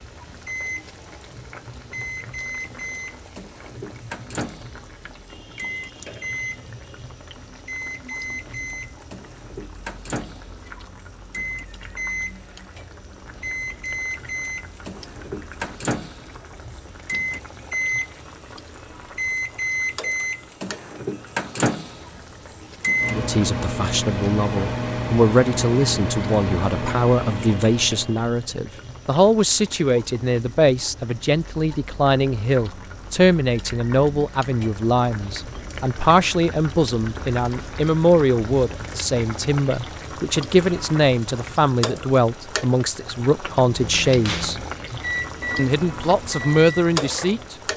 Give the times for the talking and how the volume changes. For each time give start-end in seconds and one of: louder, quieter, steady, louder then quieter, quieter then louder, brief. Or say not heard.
23.1-44.5 steady
45.5-47.5 brief.